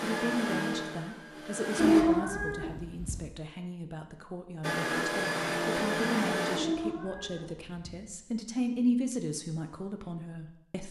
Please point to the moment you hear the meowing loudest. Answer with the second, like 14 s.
2 s.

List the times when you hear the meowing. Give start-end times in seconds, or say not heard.
1.8-3.2, 6.5-8.0.